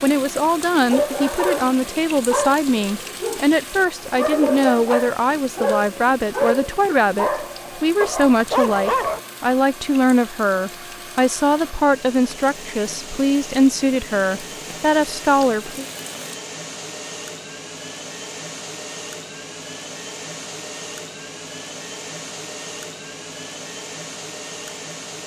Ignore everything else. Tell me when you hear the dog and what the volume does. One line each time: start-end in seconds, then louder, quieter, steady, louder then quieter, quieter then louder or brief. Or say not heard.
0.7-9.2 quieter then louder.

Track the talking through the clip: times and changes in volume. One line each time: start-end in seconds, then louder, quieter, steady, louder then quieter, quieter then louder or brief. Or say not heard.
0.0-15.8 steady.